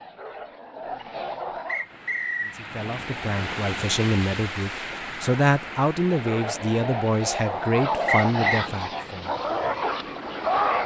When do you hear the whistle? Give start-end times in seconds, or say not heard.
1.6-2.5, 8.1-8.7.